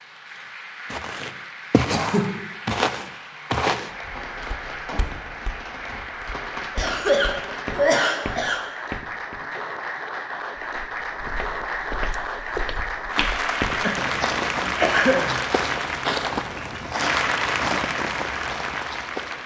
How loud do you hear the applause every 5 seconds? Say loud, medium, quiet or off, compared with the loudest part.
medium, medium, loud, loud.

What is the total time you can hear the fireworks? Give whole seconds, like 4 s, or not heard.
4 s.